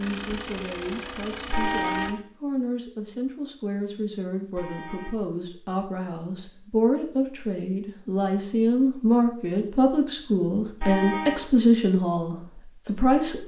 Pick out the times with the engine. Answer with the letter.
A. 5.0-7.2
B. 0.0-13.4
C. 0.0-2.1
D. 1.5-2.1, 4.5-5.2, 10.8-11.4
C.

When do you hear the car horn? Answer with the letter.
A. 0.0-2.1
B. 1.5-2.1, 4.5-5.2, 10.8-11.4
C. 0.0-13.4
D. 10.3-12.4
B.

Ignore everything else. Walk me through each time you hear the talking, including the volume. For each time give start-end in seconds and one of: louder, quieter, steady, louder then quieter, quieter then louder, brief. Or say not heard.
0.0-13.4 louder.